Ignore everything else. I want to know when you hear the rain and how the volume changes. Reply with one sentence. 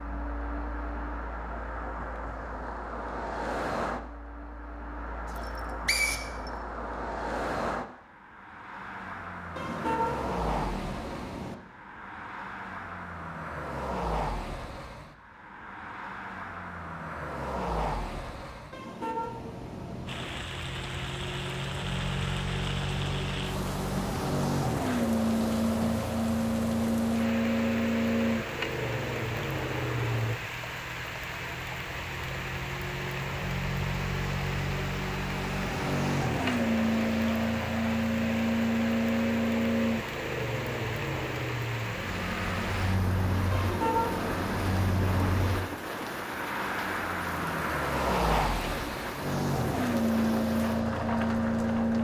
The rain can be heard from 20.1 to 51.9 s, at a steady volume.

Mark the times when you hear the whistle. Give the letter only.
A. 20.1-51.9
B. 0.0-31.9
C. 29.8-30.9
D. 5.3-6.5
D.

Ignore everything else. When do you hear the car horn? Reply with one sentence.
The car horn can be heard from 9.6 to 11.6 s, from 18.7 to 20.5 s and from 43.5 to 45.5 s.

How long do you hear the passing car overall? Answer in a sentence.
The passing car can be heard for 52 seconds in total.